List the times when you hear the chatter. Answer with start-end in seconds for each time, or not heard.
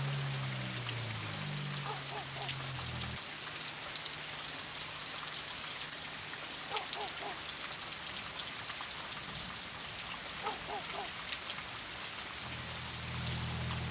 not heard.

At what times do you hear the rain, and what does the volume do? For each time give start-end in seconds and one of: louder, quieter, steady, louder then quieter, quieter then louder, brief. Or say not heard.
0.0-13.8 steady.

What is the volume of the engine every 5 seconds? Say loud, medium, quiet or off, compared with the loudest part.
loud, off, loud.